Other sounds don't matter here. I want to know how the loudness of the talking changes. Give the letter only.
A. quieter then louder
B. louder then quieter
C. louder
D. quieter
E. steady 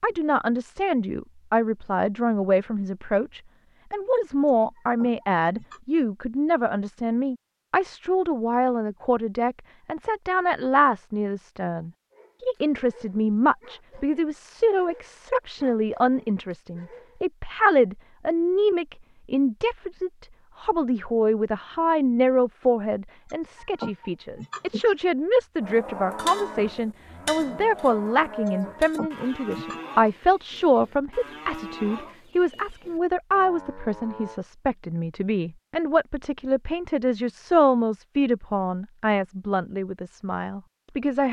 E.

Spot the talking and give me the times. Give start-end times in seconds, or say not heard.
0.0-41.2.